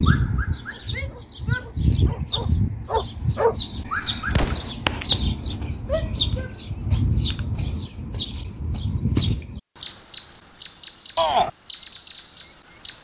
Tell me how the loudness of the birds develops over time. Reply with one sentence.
The loudness of the birds goes down.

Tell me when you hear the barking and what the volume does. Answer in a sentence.
The barking can be heard from 0.0 to 4.5 s, getting quieter then louder.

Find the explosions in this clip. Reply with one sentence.
You can hear the explosions from 4.3 to 4.8 s.